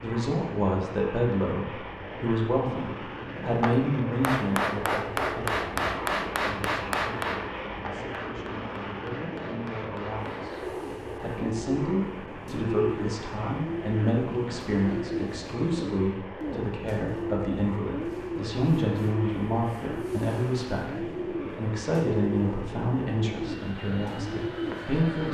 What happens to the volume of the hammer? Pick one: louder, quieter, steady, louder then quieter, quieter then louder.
quieter.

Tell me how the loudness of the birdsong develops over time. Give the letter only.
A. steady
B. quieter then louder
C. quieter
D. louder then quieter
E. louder
A.